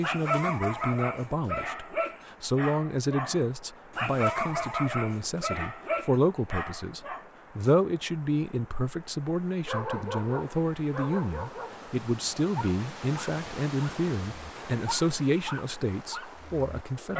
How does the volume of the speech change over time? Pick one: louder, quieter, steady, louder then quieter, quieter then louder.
steady.